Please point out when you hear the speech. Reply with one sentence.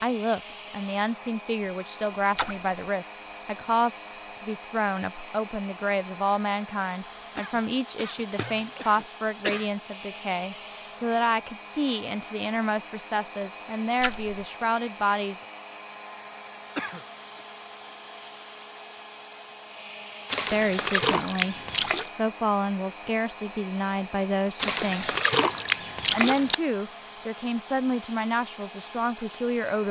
You can hear the speech from 0.0 to 15.4 s, from 20.5 to 25.2 s and from 26.1 to 29.8 s.